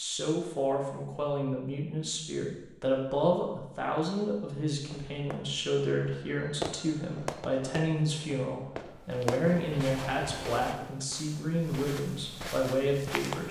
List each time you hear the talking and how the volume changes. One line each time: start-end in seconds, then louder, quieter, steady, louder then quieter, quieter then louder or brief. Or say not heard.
0.0-13.4 steady.